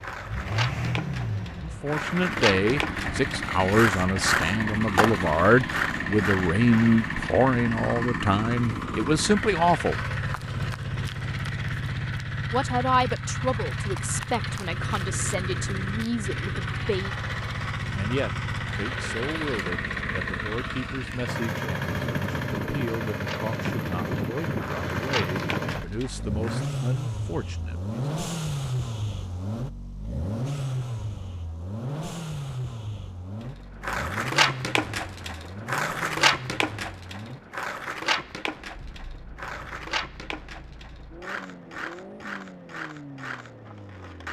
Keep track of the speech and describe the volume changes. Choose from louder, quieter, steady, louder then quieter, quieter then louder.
quieter.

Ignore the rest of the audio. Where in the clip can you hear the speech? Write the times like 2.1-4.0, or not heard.
1.6-10.1, 12.5-17.1, 17.9-28.1.